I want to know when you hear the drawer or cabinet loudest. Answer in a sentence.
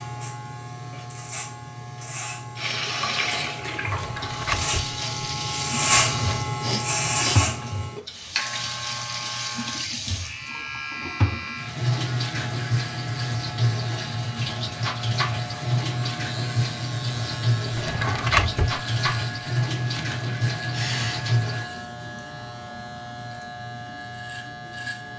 The loudest moment of the drawer or cabinet is at 18 seconds.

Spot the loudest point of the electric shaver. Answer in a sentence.
The volume of the electric shaver peaks at 6 seconds.